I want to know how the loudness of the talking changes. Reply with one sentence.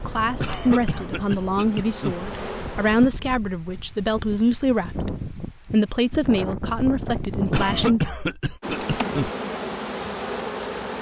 The volume of the talking stays about the same.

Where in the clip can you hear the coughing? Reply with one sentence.
The coughing can be heard from 0.4 to 2.2 s and from 7.5 to 9.3 s.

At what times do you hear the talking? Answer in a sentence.
The talking can be heard from 0.0 to 8.1 s.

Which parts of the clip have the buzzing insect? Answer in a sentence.
You can hear the buzzing insect from 0.0 to 3.1 s and from 8.6 to 10.9 s.